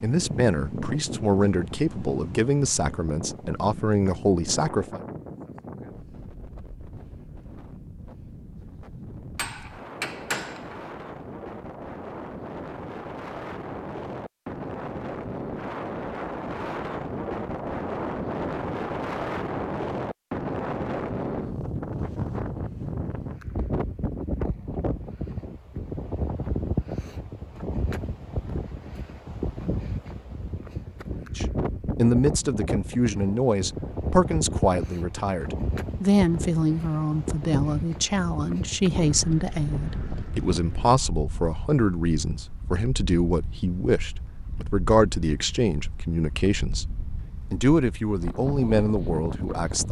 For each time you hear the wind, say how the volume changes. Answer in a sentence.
You can hear the wind from 0.0 to 49.8 s, getting louder then quieter.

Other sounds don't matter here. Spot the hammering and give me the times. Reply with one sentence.
You can hear the hammering from 9.3 to 10.8 s.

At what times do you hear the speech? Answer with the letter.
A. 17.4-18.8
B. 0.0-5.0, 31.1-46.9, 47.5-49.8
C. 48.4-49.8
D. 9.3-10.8
B.